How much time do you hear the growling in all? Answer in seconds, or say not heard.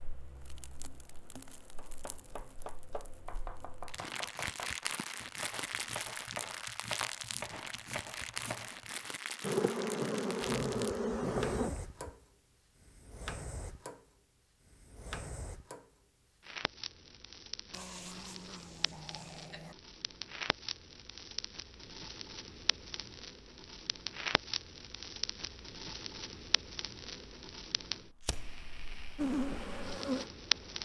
4 s.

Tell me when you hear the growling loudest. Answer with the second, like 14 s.
11 s.